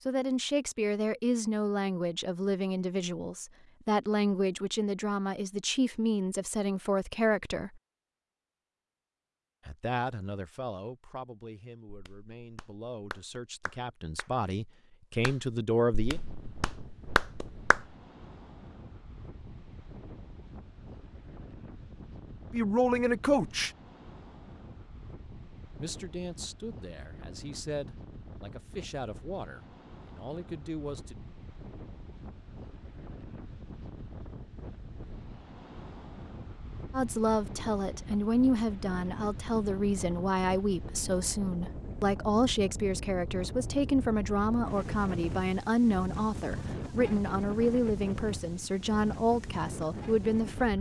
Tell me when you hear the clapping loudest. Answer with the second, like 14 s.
17 s.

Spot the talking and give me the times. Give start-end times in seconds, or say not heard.
0.1-7.8, 9.7-16.2, 22.5-23.7, 25.8-31.2, 36.9-50.7.